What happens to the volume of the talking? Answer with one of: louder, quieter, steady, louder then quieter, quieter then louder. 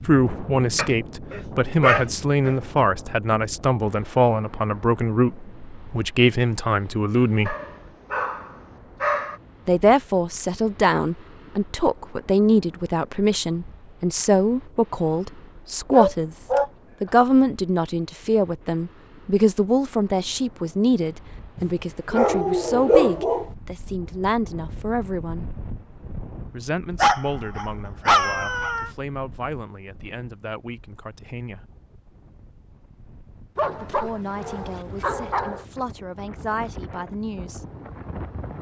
quieter.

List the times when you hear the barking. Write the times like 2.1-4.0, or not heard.
0.8-2.5, 7.5-9.3, 15.9-16.7, 21.6-23.4, 26.9-28.9, 33.5-35.6.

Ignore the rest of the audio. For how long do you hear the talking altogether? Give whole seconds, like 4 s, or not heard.
32 s.